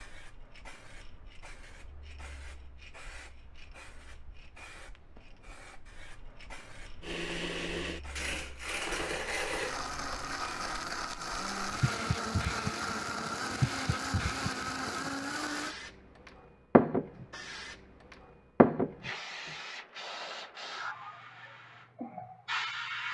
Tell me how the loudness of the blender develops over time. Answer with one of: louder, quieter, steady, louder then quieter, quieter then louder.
steady.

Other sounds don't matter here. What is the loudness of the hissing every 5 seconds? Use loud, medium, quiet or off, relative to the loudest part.
quiet, quiet, medium, loud, medium.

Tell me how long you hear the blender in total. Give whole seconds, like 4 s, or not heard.
9 s.